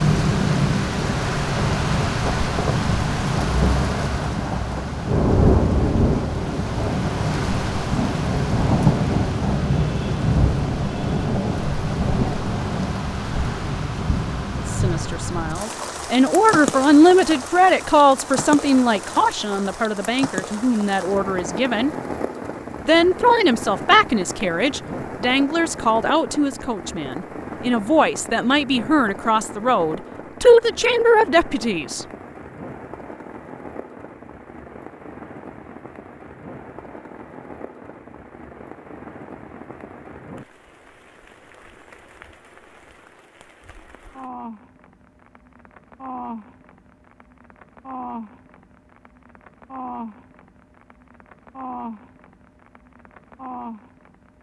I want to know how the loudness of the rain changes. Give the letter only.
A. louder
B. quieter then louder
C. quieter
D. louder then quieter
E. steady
C.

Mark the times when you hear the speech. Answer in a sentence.
You can hear the speech from 14.7 to 21.9 s and from 22.9 to 32.0 s.